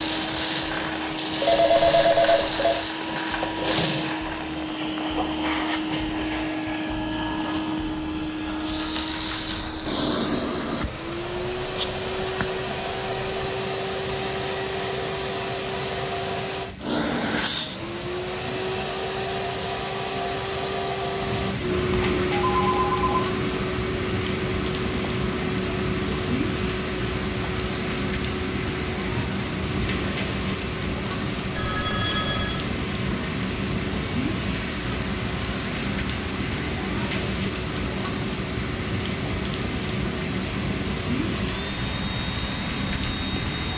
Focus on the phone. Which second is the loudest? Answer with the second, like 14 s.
2 s.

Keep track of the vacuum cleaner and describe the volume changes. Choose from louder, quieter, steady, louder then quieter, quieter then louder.
quieter.